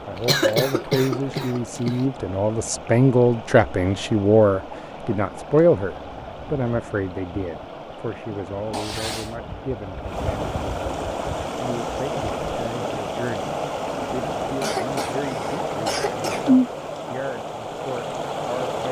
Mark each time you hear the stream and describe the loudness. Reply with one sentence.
You can hear the stream from 0.0 to 18.8 s, getting louder.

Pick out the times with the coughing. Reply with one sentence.
You can hear the coughing from 0.1 to 2.0 s, from 8.7 to 9.3 s and from 14.6 to 16.4 s.